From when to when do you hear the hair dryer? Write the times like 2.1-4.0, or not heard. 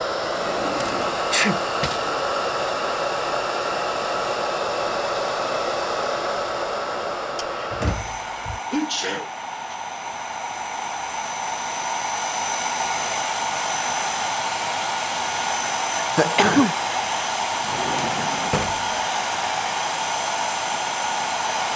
0.0-21.7.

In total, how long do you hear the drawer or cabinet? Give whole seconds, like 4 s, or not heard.
4 s.